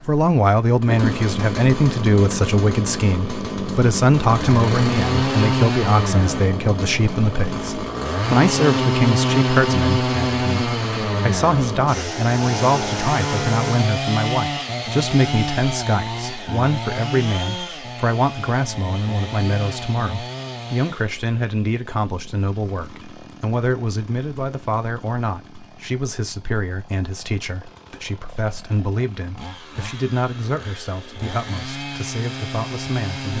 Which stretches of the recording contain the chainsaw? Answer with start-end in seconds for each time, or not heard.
0.0-33.3.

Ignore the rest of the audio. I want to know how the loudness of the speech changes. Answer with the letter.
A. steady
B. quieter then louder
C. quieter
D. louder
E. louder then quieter
C.